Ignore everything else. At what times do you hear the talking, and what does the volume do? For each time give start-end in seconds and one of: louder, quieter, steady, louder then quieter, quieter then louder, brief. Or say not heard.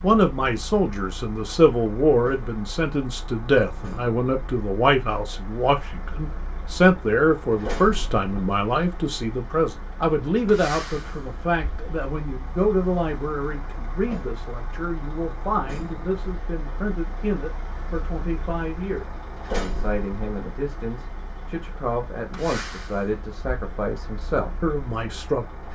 0.0-25.7 quieter.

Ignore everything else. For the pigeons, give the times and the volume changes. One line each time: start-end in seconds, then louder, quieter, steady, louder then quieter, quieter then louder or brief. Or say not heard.
not heard.